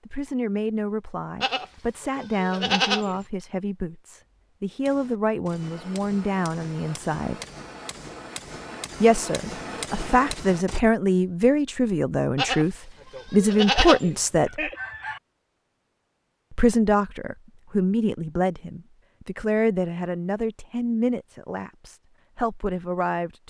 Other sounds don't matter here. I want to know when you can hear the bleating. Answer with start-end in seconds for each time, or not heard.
1.4-3.2, 12.3-14.2.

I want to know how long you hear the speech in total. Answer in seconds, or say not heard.
20 s.